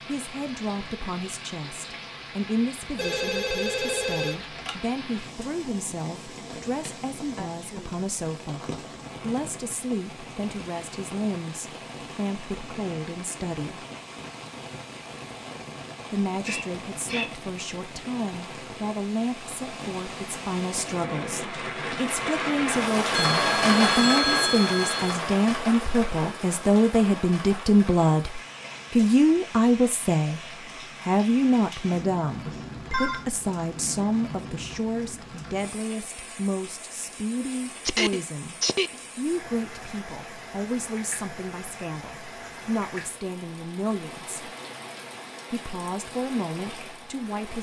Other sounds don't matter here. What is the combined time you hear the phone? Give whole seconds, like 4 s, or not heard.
5 s.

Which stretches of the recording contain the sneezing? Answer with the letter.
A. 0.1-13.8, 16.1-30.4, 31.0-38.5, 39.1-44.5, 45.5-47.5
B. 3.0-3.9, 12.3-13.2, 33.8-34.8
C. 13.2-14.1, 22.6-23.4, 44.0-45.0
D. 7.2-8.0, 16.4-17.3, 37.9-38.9
D.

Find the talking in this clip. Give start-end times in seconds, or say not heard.
0.1-13.8, 16.1-30.4, 31.0-38.5, 39.1-44.5, 45.5-47.5.